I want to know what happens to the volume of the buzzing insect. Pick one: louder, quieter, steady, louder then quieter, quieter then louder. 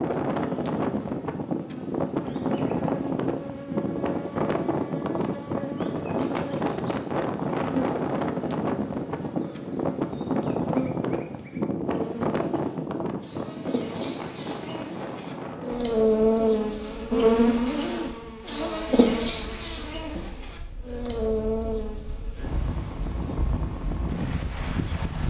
louder then quieter.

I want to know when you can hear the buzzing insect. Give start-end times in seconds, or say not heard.
0.0-25.2.